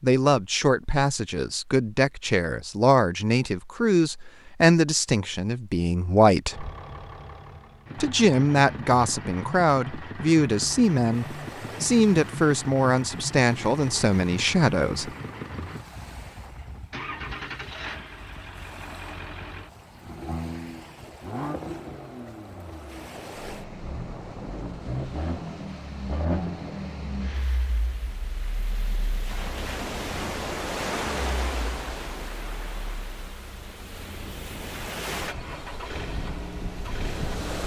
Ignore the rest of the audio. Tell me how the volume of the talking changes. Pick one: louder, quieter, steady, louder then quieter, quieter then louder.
steady.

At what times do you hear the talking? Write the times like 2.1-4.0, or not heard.
0.0-6.7, 8.0-15.1.